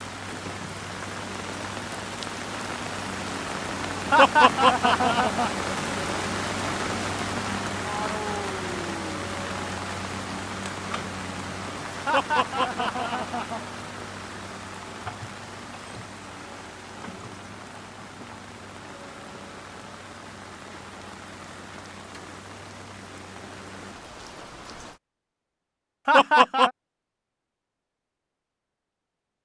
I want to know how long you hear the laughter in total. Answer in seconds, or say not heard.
4 s.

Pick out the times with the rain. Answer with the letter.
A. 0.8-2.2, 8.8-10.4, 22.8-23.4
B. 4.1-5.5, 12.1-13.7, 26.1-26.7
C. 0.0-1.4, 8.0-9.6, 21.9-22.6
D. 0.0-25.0
D.